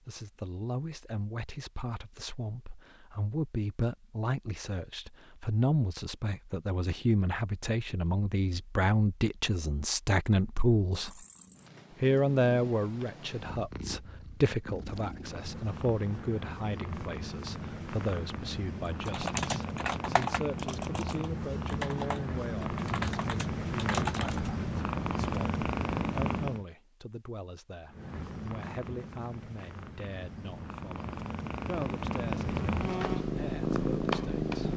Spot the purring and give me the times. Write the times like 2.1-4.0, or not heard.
10.8-26.6, 27.9-34.7.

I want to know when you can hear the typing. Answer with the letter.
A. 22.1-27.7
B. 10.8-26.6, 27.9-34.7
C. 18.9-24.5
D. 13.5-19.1
C.